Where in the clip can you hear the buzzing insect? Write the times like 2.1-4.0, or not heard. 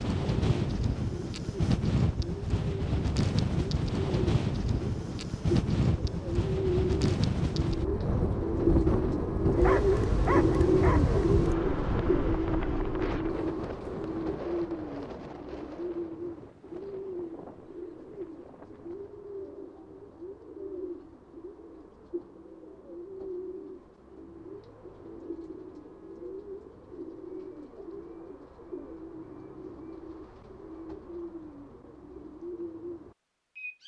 not heard.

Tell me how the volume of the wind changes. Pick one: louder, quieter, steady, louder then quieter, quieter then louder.
quieter.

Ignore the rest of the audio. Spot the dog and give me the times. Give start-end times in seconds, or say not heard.
9.5-11.4.